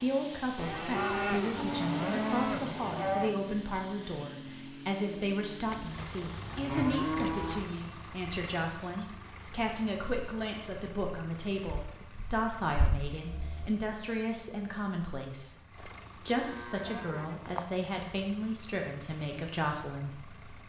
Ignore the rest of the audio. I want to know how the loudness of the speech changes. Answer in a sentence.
The volume of the speech stays about the same.